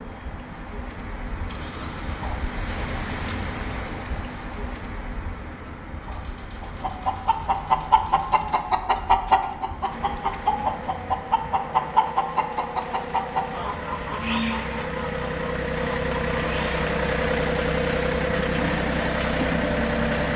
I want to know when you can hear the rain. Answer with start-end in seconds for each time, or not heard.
0.0-12.2.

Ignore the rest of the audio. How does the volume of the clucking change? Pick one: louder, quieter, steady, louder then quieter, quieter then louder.
quieter.